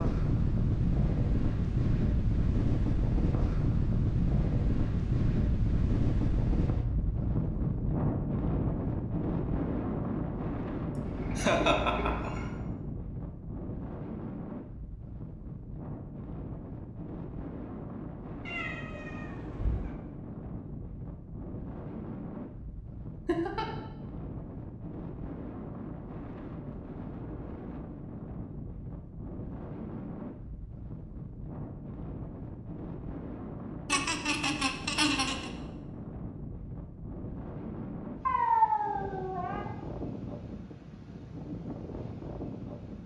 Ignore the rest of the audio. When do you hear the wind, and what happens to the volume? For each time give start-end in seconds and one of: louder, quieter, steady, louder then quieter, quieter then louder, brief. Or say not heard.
0.0-43.0 quieter.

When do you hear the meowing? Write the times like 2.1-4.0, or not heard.
11.0-12.5, 18.4-19.8, 38.2-39.7.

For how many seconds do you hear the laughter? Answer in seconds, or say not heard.
4 s.